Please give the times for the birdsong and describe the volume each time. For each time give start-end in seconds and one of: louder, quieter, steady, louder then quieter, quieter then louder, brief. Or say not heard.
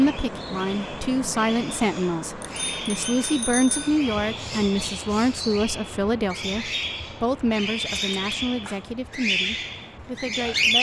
0.0-10.7 louder.